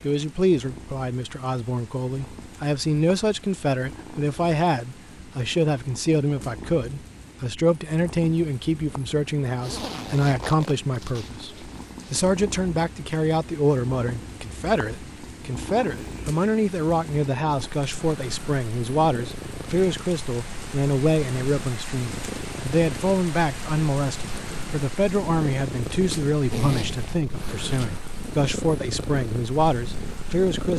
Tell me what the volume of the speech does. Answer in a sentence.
The loudness of the speech stays about the same.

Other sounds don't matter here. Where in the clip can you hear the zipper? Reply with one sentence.
The zipper can be heard from 9.6 to 12.2 s and from 26.4 to 27.9 s.